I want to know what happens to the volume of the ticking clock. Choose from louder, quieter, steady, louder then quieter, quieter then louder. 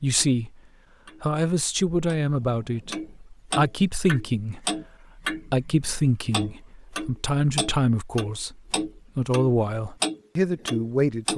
louder.